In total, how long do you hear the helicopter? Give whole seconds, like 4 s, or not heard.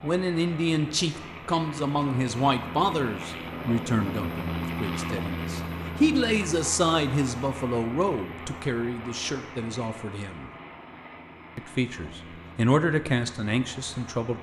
14 s.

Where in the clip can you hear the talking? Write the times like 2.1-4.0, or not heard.
0.0-10.5, 11.6-14.3.